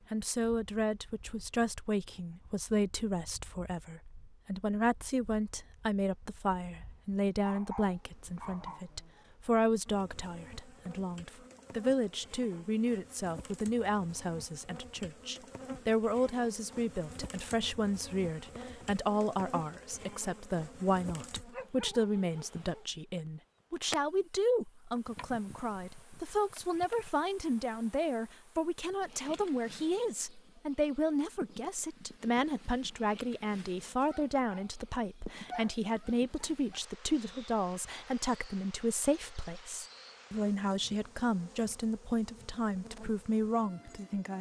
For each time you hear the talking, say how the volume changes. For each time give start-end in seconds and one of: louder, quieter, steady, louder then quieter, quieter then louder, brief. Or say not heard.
0.1-44.3 steady.